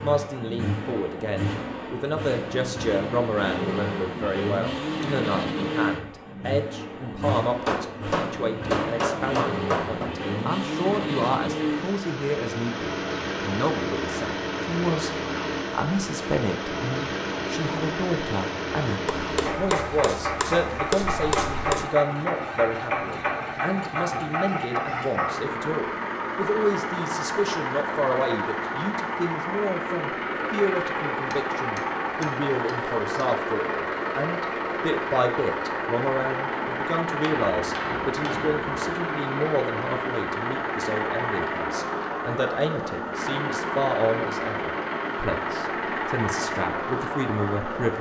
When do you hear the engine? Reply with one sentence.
You can hear the engine from 0.0 to 47.9 s.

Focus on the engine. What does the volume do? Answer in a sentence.
The volume of the engine stays about the same.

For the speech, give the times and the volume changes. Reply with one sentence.
The speech can be heard from 0.0 to 47.9 s, at a steady volume.